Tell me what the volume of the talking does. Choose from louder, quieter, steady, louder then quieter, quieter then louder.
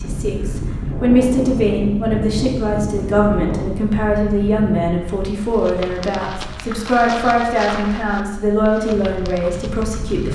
steady.